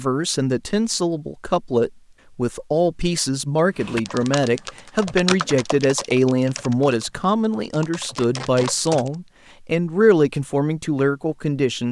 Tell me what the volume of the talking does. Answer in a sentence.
The volume of the talking stays about the same.